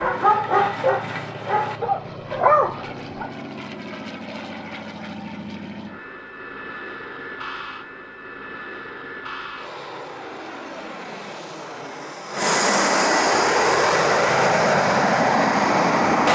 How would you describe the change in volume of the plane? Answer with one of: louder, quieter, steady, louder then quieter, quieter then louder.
louder.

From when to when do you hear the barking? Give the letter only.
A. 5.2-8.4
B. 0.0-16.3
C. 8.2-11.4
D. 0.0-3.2
D.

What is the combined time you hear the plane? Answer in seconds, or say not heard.
16 s.